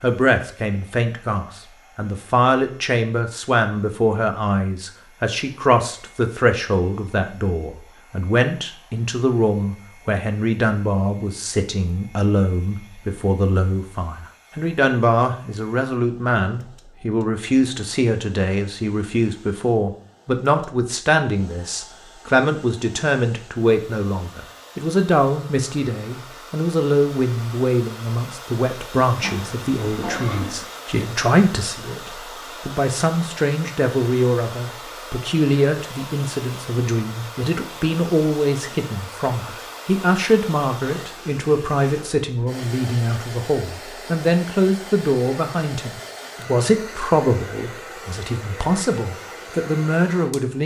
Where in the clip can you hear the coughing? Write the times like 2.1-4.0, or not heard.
29.2-30.6.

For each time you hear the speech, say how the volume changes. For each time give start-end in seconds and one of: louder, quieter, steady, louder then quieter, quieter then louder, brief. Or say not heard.
0.0-50.6 steady.